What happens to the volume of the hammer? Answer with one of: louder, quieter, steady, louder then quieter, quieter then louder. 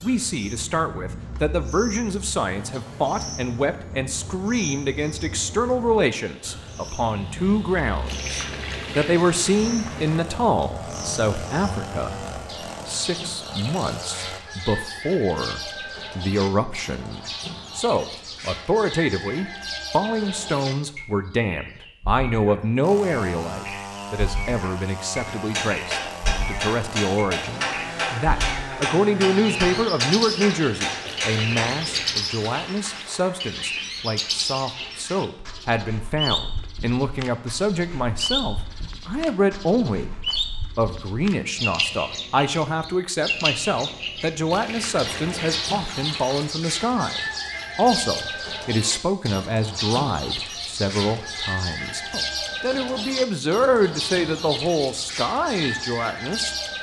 steady.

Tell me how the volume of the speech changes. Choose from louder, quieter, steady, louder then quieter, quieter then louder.
steady.